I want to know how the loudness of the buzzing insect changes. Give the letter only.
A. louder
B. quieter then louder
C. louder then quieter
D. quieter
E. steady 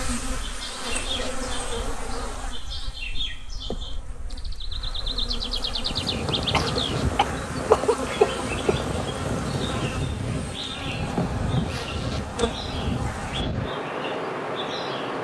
B.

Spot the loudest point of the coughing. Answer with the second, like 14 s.
8 s.